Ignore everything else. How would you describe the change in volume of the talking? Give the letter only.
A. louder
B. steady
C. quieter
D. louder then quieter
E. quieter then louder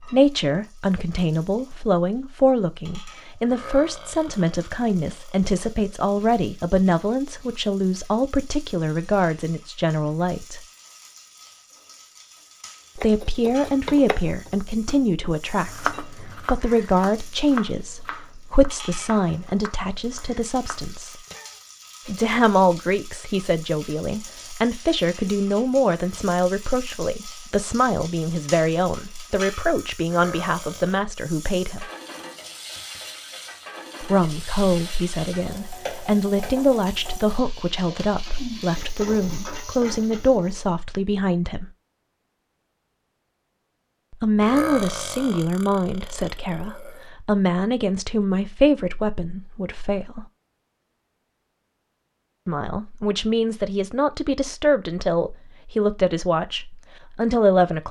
B.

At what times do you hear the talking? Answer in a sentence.
The talking can be heard from 0.0 to 10.6 s, from 12.9 to 21.1 s, from 22.1 to 31.9 s, from 34.0 to 41.7 s, from 44.1 to 50.2 s and from 52.5 to 57.8 s.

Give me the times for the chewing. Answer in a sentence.
You can't hear the chewing here.